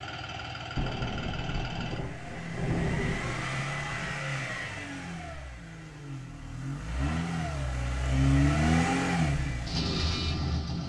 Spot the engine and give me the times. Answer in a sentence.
The engine can be heard from 0.0 to 10.8 s.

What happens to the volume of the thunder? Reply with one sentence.
The volume of the thunder goes up, then down.